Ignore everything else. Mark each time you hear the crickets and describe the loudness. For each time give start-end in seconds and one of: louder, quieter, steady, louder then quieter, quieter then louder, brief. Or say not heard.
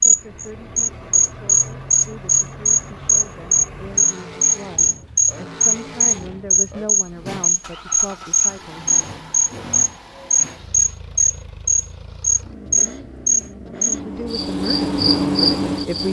0.0-16.0 steady.